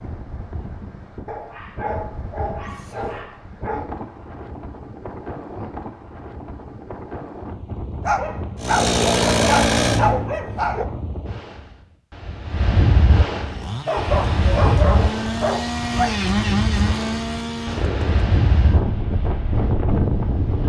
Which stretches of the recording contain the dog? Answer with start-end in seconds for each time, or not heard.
1.2-3.9, 8.0-10.8, 13.8-16.1.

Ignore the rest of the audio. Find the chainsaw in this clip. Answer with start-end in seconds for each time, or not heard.
8.6-10.3, 13.4-18.3.